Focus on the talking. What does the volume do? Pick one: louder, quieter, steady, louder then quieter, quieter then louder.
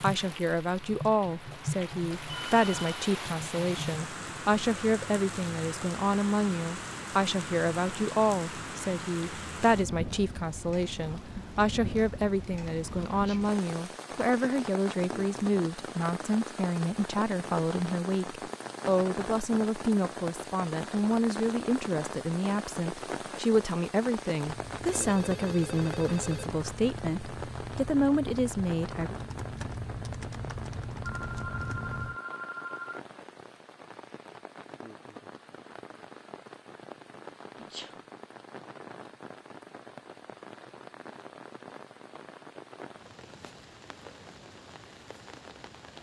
steady.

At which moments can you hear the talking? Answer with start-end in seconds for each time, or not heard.
0.0-29.1.